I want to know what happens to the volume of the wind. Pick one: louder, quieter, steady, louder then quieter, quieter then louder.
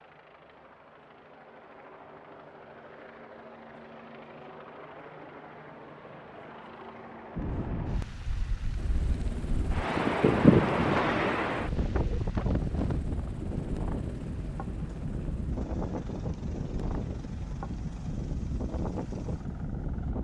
louder then quieter.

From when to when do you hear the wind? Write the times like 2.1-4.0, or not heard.
7.3-20.1.